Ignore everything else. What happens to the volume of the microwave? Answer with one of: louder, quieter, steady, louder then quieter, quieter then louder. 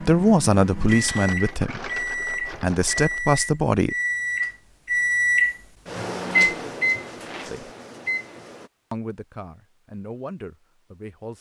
louder then quieter.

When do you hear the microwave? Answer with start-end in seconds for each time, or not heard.
0.0-8.7.